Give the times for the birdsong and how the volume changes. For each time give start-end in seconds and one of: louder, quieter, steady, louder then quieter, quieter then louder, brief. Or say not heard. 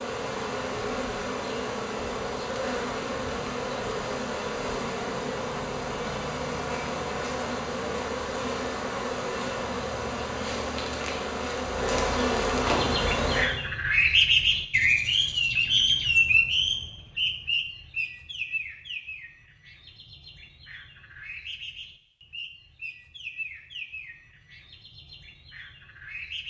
12.7-26.4 quieter.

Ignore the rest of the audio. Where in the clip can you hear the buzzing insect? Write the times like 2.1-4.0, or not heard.
0.0-13.4.